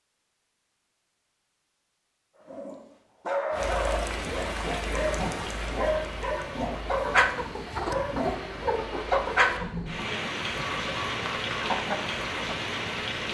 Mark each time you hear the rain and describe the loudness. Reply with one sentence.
The rain can be heard from 3.5 to 13.2 s, getting quieter then louder.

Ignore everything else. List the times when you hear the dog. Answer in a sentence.
You can hear the dog from 2.4 to 8.9 s.